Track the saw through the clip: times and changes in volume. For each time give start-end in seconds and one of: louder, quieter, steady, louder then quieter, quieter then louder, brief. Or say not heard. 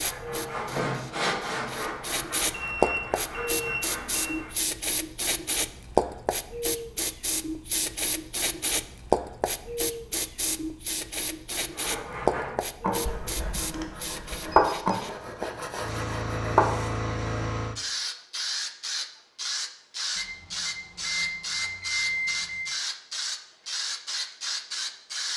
0.0-4.5 quieter
11.5-16.9 louder then quieter.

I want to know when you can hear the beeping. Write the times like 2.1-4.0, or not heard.
2.5-4.3, 13.1-14.9, 20.1-22.6.